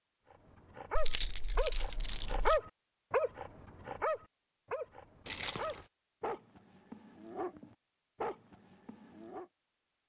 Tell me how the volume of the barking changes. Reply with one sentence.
The volume of the barking goes up, then down.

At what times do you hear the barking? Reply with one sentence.
The barking can be heard from 0.3 to 9.4 s.